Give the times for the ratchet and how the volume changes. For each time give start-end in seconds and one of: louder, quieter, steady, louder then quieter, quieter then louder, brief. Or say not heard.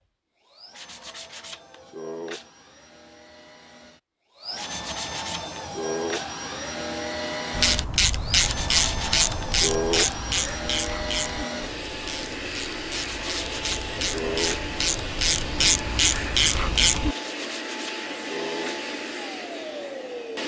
7.5-17.1 quieter then louder.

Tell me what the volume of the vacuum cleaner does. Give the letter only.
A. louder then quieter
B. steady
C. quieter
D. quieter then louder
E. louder
E.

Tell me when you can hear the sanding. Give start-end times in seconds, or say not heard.
0.7-2.5, 4.5-6.3, 8.4-10.2, 13.0-14.7, 17.2-18.9.